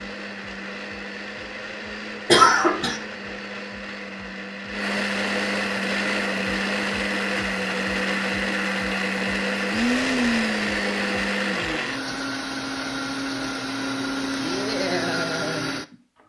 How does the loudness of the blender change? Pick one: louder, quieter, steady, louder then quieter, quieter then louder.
louder.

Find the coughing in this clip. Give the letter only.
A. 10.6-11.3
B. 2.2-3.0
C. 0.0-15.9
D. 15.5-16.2
B.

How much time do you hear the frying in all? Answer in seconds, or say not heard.
not heard.